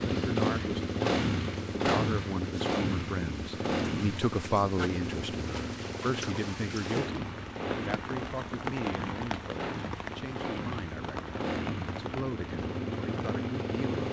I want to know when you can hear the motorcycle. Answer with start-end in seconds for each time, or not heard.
0.0-14.0.